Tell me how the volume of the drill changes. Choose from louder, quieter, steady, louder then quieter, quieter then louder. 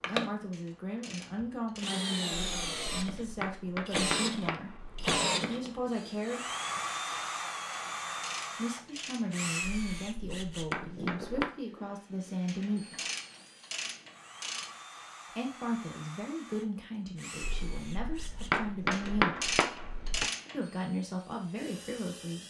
quieter.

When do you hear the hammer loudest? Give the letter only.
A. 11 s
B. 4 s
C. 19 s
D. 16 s
C.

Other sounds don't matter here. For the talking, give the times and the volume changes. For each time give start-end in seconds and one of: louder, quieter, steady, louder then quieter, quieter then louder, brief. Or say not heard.
0.1-6.5 steady
8.6-13.0 steady
15.3-19.6 quieter then louder
20.5-22.4 brief.